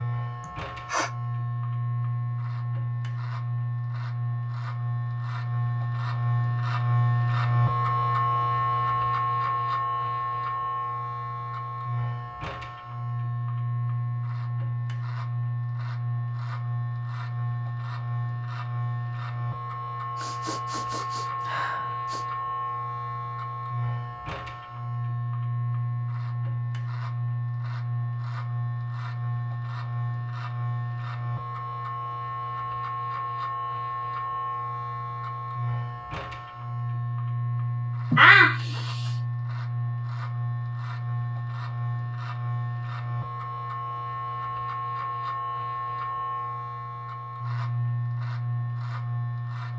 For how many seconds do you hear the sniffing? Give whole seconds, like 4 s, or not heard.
4 s.